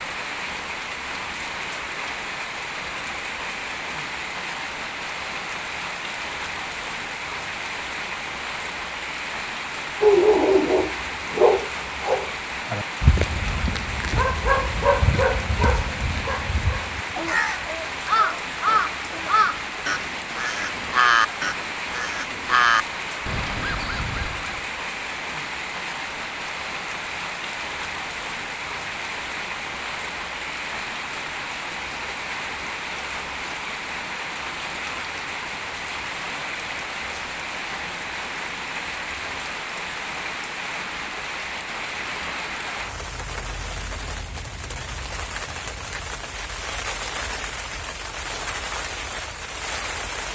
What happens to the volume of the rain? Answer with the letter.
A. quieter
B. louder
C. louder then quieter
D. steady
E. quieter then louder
D.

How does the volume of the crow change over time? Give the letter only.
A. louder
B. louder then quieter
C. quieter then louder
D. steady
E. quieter
E.